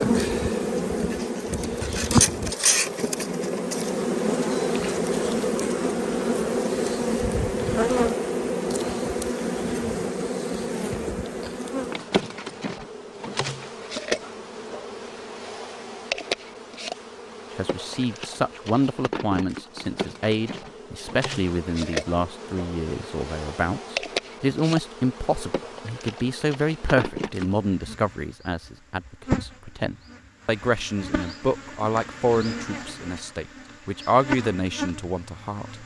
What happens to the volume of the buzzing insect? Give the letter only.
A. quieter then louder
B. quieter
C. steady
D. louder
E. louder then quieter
B.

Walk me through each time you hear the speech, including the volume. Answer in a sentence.
The speech can be heard from 17.6 to 35.8 s, at a steady volume.